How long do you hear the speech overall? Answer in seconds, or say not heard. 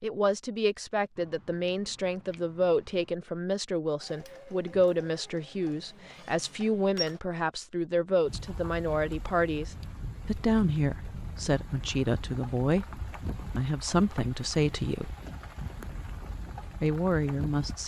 16 s.